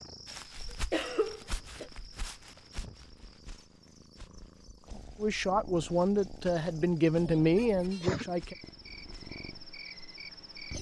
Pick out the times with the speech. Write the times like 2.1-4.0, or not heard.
5.2-8.6.